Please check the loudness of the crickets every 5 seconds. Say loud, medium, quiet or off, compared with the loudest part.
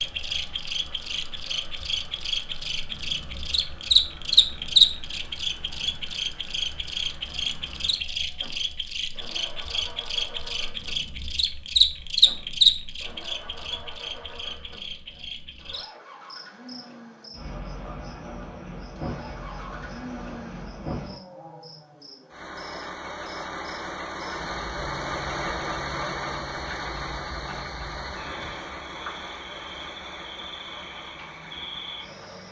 loud, medium, loud, quiet, quiet, quiet, quiet.